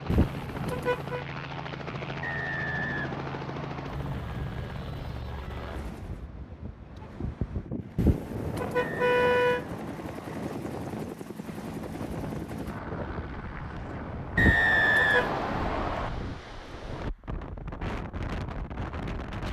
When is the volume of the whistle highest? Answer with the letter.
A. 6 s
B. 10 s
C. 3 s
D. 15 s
D.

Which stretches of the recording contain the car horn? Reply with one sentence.
You can hear the car horn from 0.1 to 1.2 s, from 8.0 to 9.7 s and from 14.3 to 15.3 s.